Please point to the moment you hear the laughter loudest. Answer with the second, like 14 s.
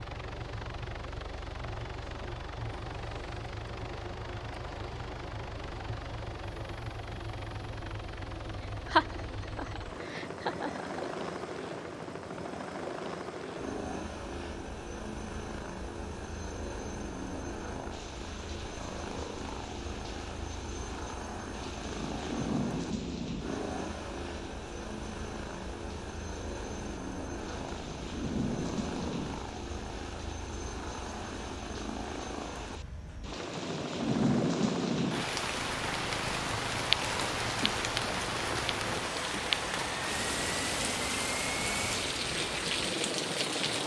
9 s.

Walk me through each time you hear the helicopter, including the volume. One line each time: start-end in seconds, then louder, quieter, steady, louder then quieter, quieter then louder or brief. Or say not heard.
0.0-43.8 steady.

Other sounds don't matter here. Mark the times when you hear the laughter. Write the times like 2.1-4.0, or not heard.
8.6-10.8.